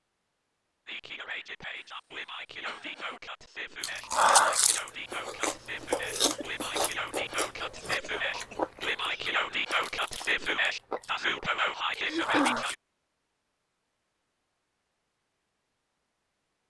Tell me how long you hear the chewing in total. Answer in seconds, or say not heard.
9 s.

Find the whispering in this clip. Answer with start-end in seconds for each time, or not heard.
0.8-12.8.